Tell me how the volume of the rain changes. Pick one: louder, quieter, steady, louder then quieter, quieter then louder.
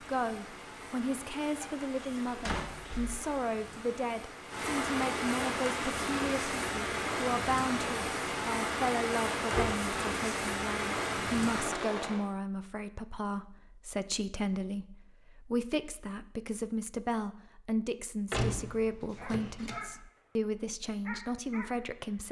louder.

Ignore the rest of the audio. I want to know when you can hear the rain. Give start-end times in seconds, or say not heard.
0.0-12.2.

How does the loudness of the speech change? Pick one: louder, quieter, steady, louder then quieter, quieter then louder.
steady.